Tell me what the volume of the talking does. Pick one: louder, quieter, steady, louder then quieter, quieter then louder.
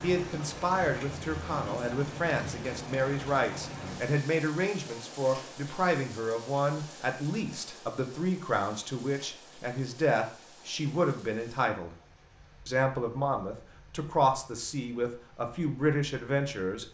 steady.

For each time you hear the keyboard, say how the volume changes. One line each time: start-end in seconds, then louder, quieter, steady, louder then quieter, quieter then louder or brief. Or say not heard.
not heard.